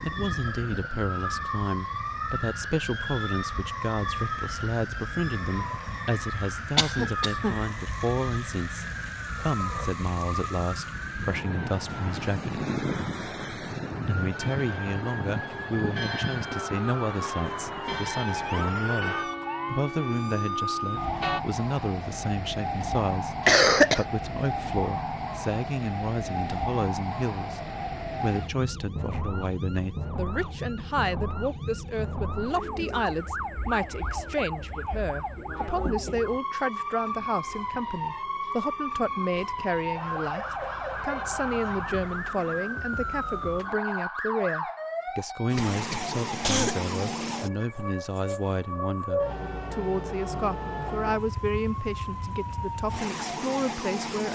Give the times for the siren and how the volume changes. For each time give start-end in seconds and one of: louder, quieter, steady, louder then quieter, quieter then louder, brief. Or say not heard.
0.0-54.3 steady.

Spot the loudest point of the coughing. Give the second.
24 s.